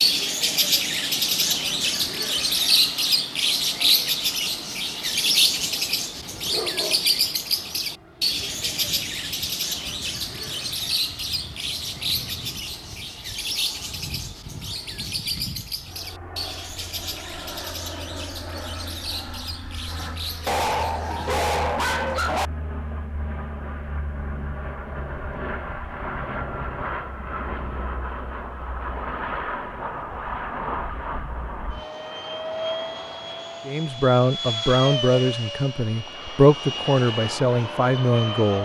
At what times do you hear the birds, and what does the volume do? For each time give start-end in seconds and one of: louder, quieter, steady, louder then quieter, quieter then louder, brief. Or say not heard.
0.0-21.4 quieter.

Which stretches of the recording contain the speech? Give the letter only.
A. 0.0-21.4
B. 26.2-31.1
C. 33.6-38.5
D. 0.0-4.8
C.